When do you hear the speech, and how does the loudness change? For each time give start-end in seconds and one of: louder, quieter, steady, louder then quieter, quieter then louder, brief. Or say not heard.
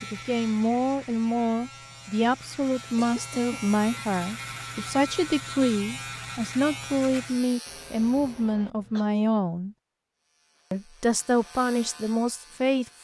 0.0-9.8 steady
10.7-13.0 brief.